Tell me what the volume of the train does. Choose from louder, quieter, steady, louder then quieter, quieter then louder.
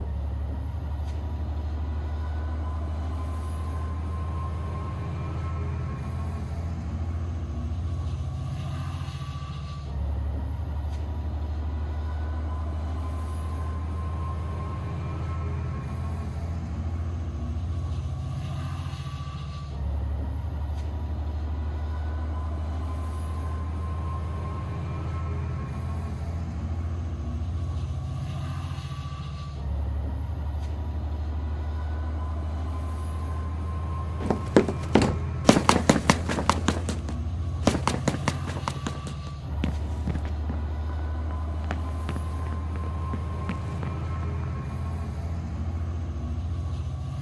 steady.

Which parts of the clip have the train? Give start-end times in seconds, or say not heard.
0.0-47.1.